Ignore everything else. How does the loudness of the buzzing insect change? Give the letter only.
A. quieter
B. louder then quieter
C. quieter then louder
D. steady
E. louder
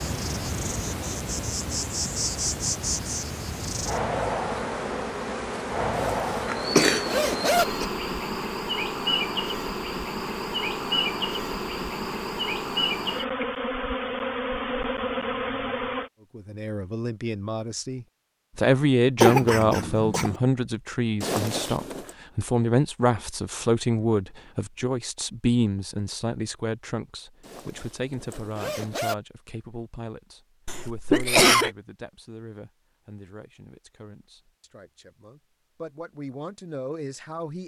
D.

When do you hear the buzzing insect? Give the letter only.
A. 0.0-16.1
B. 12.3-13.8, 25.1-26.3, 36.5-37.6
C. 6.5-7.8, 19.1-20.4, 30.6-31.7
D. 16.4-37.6
A.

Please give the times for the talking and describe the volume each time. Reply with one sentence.
The talking can be heard from 16.4 to 37.6 s, getting quieter.